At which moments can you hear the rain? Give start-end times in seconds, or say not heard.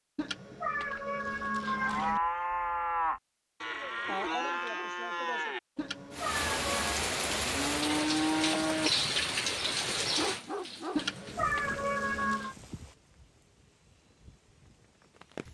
6.1-15.4.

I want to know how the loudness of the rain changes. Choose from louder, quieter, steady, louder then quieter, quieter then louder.
quieter.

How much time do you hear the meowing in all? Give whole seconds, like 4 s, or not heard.
5 s.